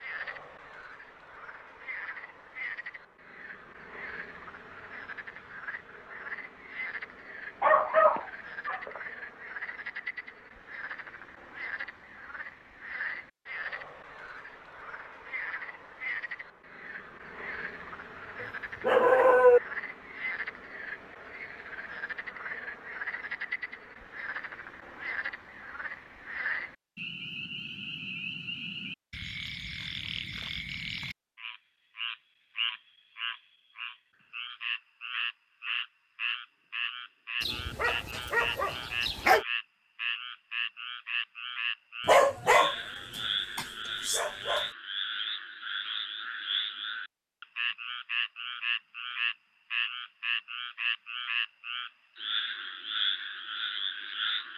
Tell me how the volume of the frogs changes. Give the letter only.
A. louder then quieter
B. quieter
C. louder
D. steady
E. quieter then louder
C.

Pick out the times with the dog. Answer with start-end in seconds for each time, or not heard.
7.6-9.0, 18.4-19.6, 37.4-39.5, 42.0-44.6.